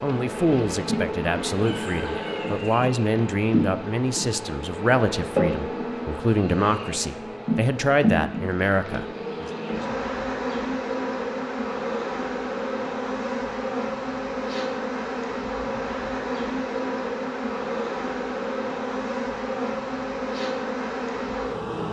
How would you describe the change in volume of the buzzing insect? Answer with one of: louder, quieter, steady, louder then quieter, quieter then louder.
steady.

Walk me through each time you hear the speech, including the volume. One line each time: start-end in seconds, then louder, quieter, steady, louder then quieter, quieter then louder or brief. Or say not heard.
0.0-9.5 steady.